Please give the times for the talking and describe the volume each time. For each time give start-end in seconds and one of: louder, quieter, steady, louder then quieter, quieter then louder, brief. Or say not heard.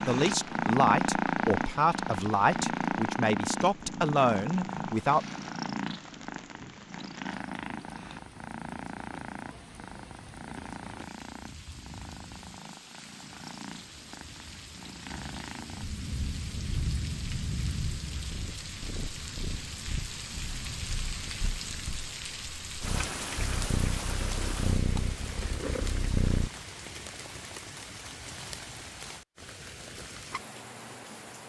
0.1-5.2 steady.